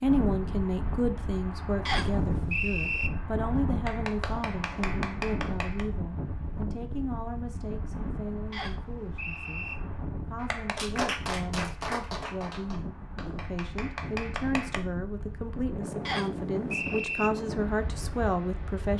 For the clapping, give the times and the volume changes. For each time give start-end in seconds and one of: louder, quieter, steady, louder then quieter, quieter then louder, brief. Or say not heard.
3.9-5.8 brief
10.4-14.8 quieter then louder.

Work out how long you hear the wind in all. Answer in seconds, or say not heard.
19 s.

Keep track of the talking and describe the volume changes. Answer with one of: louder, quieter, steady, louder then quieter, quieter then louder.
quieter then louder.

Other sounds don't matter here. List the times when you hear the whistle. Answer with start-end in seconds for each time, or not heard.
1.9-3.1, 8.5-9.8, 16.1-17.3.